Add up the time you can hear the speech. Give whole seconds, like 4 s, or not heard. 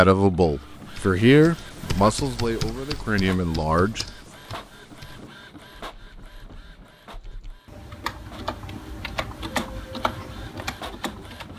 4 s.